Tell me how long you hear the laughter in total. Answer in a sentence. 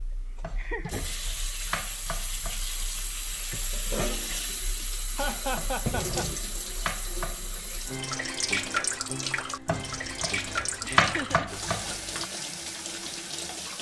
You can hear the laughter for 2 seconds altogether.